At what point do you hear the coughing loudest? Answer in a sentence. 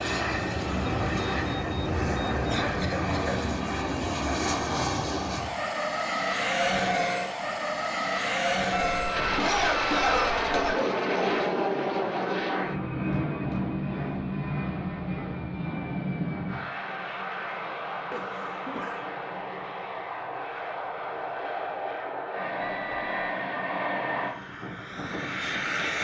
The volume of the coughing peaks at 10 seconds.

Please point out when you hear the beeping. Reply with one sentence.
You can hear the beeping from 0.8 to 2.9 s, from 8.7 to 10.5 s and from 22.6 to 23.4 s.